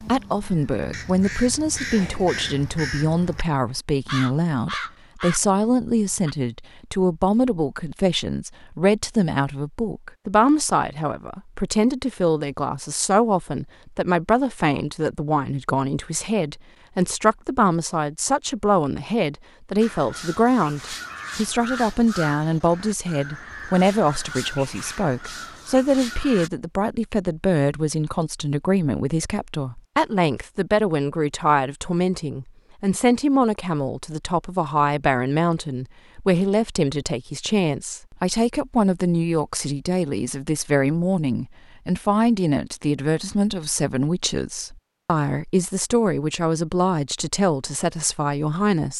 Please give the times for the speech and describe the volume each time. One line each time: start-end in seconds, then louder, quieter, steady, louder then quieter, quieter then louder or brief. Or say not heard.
0.0-48.9 steady.